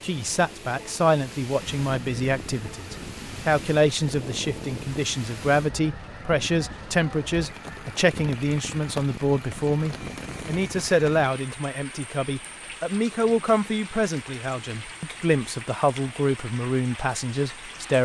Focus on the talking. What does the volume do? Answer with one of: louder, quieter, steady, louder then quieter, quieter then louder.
steady.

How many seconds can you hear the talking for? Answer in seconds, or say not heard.
18 s.